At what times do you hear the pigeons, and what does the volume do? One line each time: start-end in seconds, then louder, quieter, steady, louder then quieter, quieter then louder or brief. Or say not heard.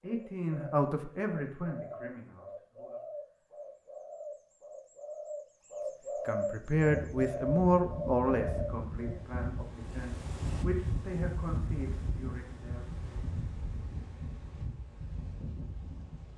0.0-9.2 louder.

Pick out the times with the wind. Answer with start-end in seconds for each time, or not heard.
6.8-16.3.